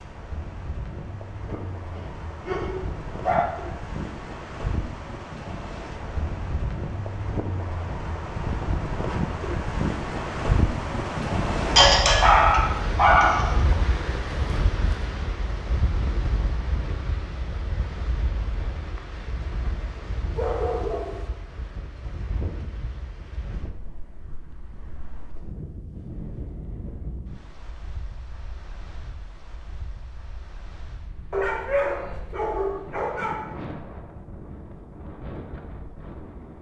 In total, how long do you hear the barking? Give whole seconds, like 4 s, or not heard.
7 s.